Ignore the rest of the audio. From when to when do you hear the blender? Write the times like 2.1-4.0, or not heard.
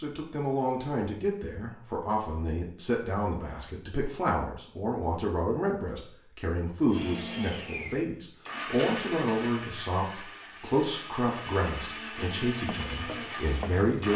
6.8-14.1.